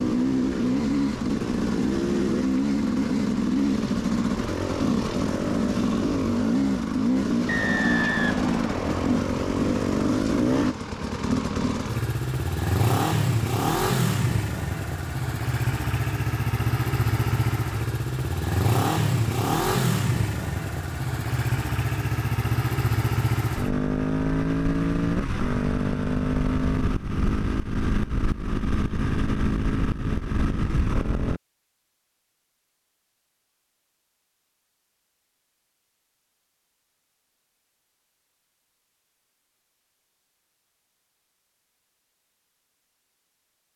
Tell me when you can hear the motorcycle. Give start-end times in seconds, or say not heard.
0.0-31.4.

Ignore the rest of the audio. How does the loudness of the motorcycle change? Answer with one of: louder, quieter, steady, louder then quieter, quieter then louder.
steady.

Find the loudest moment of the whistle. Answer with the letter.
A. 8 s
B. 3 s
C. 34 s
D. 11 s
A.